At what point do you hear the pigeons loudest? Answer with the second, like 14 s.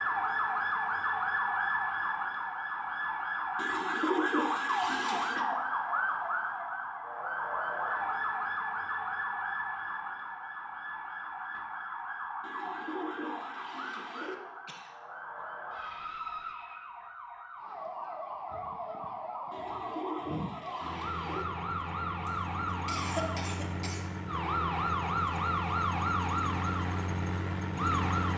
4 s.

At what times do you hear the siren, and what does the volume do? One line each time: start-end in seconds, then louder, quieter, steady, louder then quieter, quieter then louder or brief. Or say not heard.
0.0-28.3 quieter then louder.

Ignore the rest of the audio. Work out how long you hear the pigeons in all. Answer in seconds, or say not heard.
6 s.